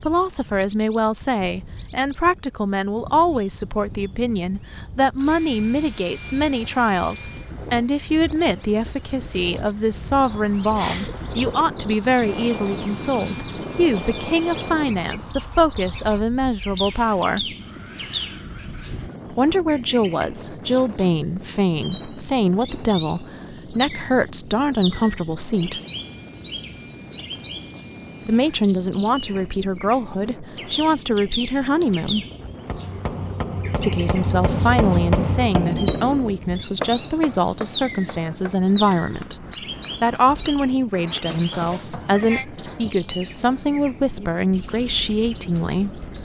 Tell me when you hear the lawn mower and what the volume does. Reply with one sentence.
The lawn mower can't be heard in this clip.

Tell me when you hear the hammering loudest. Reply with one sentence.
The volume of the hammering peaks at 35 seconds.